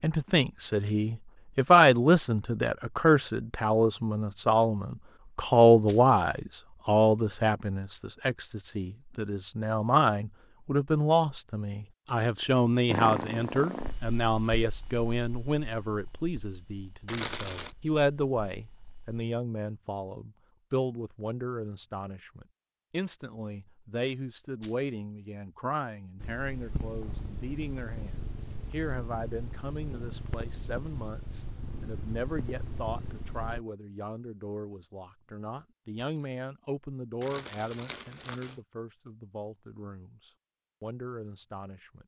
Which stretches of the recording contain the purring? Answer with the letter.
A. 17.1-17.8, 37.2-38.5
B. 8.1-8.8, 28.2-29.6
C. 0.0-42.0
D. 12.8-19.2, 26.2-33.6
D.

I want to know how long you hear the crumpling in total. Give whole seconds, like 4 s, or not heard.
2 s.